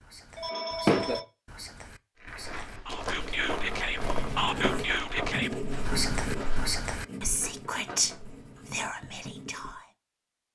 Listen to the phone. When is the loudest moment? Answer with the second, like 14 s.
1 s.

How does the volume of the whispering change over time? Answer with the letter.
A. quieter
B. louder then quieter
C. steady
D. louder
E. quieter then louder
D.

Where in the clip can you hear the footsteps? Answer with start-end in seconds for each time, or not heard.
2.2-6.8.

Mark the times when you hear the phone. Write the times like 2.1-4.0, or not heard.
0.3-1.2, 7.4-8.7.